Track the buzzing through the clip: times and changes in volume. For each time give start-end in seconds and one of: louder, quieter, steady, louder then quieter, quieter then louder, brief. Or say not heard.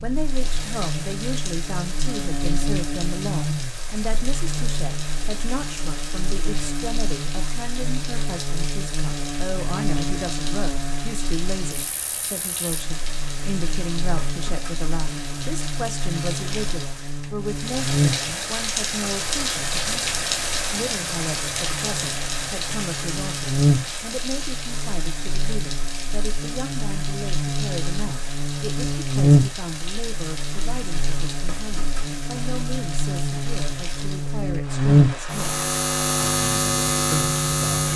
0.0-37.9 louder.